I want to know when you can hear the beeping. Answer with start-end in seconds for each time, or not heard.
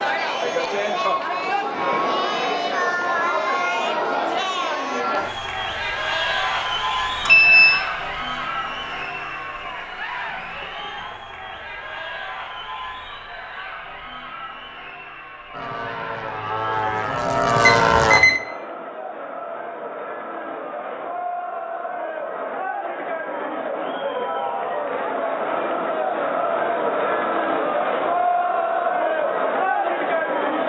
7.2-7.8, 17.6-18.4.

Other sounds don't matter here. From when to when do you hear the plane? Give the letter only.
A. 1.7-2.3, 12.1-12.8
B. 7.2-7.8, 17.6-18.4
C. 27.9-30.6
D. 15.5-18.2
D.